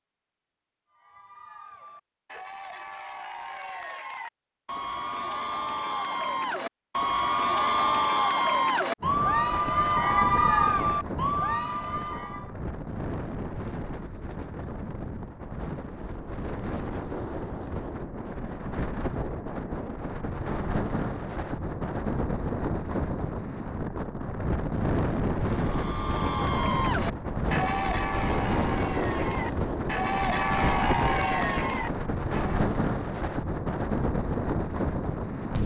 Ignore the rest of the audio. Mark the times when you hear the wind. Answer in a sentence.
You can hear the wind from 9.0 to 35.6 s.